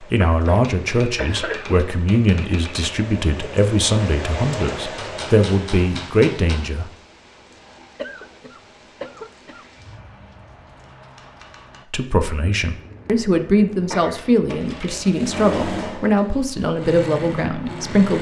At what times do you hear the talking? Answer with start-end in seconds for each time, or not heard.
0.0-6.9, 11.9-18.1.